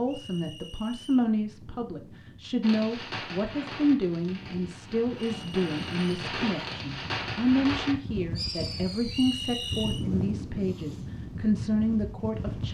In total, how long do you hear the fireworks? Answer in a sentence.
The fireworks can be heard for 7 seconds in total.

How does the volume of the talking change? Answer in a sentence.
The volume of the talking stays about the same.